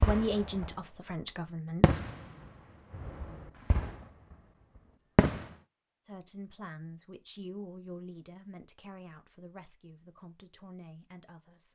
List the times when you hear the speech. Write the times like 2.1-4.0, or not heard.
0.1-2.0, 6.0-11.7.